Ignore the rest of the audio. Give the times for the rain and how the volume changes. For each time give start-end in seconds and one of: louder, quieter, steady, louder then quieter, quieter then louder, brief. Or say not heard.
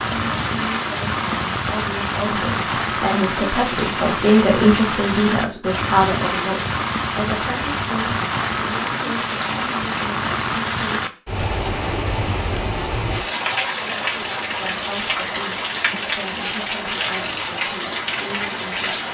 0.0-19.1 steady.